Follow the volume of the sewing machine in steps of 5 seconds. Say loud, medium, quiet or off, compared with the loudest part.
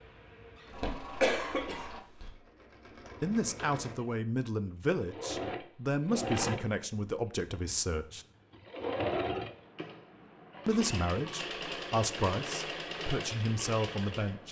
medium, loud, loud.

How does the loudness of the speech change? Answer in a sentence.
The volume of the speech stays about the same.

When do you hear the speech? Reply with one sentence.
The speech can be heard from 3.2 to 8.2 s and from 10.7 to 14.4 s.